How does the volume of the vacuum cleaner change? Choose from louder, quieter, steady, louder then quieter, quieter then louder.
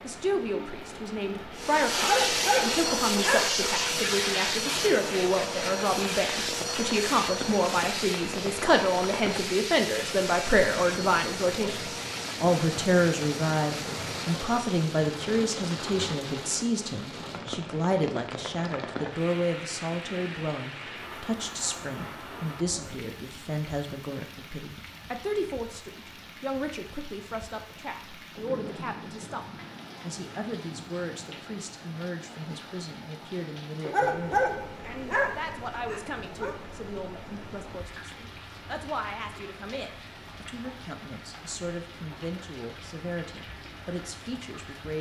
quieter.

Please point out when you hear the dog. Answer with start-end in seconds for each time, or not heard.
1.9-3.6, 33.8-36.5.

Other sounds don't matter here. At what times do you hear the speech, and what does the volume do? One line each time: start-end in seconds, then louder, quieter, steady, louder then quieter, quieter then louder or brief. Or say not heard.
0.0-44.9 quieter.